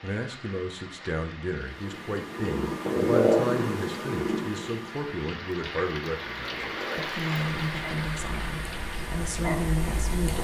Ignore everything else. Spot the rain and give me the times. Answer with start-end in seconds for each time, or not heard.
0.0-10.4.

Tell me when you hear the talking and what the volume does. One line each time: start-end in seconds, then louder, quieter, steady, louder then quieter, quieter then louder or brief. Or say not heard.
0.0-10.4 steady.